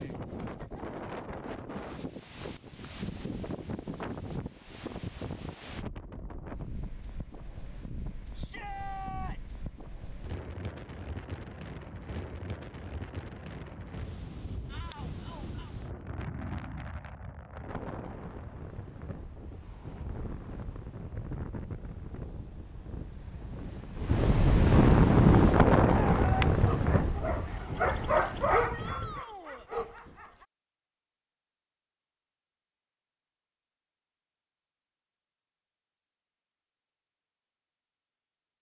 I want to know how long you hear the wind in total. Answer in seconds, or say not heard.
29 s.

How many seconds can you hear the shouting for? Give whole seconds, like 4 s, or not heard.
3 s.